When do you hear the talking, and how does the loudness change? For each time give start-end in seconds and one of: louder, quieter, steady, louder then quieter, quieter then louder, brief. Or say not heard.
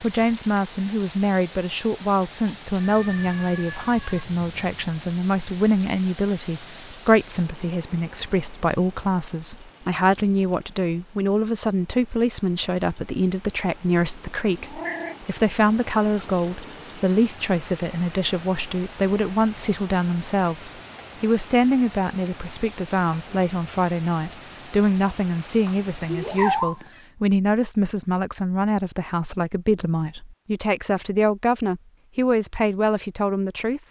0.0-33.8 steady.